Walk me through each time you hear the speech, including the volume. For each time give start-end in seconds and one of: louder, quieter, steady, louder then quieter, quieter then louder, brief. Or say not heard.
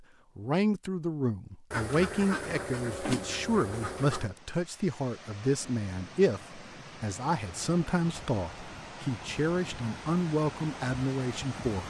0.3-11.8 steady.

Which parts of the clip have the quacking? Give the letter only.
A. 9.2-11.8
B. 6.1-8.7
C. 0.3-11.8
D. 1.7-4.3
D.